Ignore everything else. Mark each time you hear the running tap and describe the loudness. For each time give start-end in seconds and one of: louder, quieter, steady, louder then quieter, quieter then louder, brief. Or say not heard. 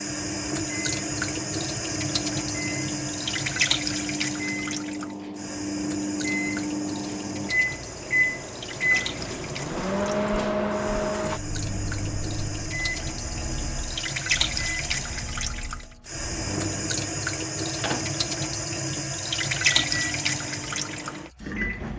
0.0-21.9 quieter then louder.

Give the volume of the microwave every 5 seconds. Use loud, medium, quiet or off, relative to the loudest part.
medium, loud, loud, medium, medium.